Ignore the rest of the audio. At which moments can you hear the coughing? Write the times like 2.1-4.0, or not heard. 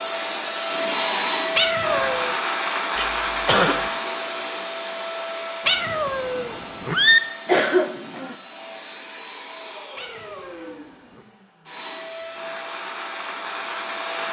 3.0-3.9, 7.5-8.3.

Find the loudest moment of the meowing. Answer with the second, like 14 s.
7 s.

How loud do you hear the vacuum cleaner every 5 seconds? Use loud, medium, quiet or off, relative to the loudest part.
loud, medium, medium.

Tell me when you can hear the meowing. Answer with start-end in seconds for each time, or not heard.
1.6-2.4, 5.7-7.2, 9.9-11.2.